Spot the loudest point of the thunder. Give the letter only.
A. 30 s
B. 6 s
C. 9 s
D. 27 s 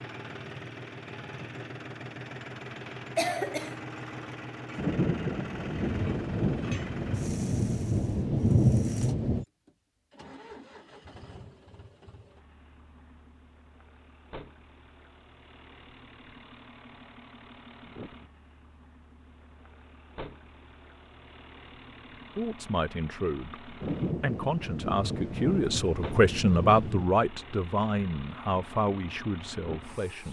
C.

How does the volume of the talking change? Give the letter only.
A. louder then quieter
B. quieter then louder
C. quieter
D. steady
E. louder
A.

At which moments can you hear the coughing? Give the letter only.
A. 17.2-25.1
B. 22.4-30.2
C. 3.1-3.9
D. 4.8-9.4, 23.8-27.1
C.